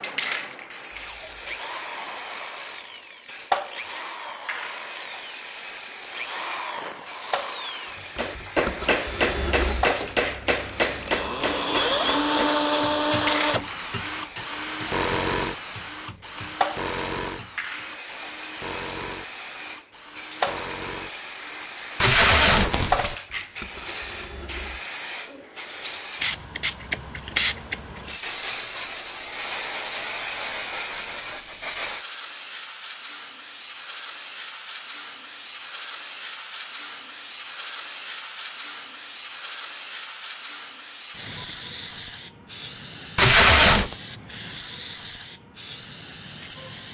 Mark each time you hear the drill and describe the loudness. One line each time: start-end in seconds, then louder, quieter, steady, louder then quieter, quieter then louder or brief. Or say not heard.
0.0-24.9 louder then quieter.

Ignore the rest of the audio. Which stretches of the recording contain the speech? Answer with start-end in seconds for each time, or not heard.
not heard.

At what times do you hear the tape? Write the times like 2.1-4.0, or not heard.
0.9-1.6, 22.0-23.1, 43.1-44.0.